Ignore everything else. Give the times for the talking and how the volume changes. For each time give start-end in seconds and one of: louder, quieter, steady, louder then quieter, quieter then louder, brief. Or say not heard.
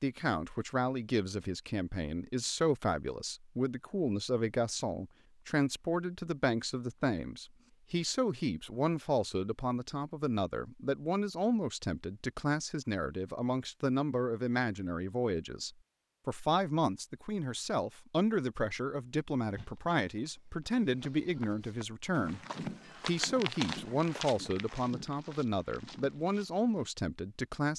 0.0-22.4 steady
23.1-27.7 steady.